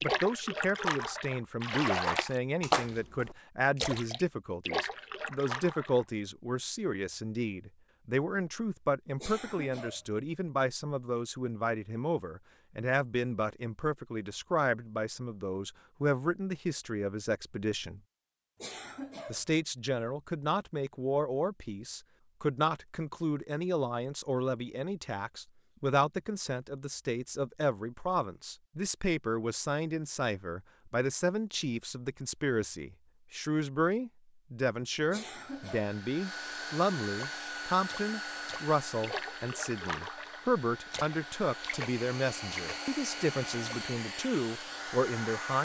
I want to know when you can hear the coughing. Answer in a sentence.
You can hear the coughing from 9.2 to 10.1 s, from 18.6 to 19.4 s and from 35.1 to 36.0 s.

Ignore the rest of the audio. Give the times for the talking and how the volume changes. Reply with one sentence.
The talking can be heard from 0.0 to 18.0 s, at a steady volume; and from 19.3 to 45.5 s, at a steady volume.